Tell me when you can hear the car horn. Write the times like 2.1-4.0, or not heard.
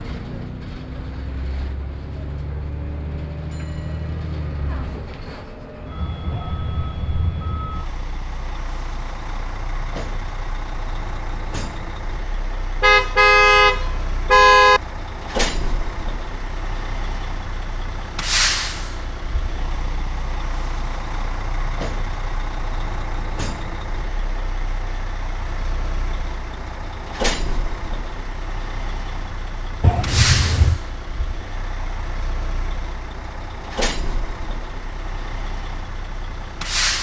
6.3-7.7, 12.8-14.8, 29.8-30.8.